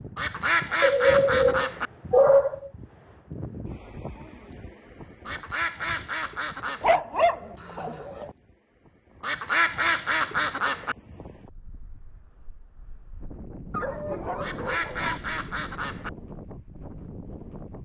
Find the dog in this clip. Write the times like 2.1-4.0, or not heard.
0.8-2.7, 6.8-8.3, 13.7-15.2.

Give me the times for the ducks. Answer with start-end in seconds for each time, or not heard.
0.1-1.9, 5.2-7.0, 9.2-10.9, 14.4-16.1.